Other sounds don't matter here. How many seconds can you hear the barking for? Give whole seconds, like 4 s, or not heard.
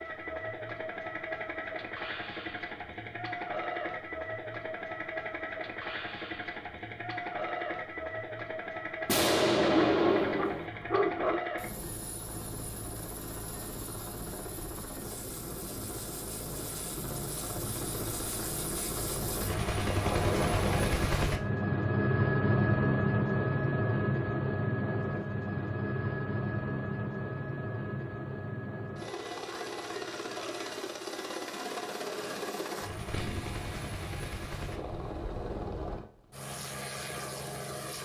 2 s.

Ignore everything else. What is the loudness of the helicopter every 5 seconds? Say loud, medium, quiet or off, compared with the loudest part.
medium, medium, medium, medium, loud, medium, medium, medium.